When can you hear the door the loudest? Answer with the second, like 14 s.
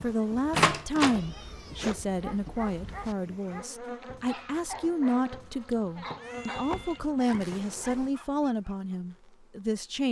1 s.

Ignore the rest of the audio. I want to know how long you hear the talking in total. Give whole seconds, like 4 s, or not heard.
10 s.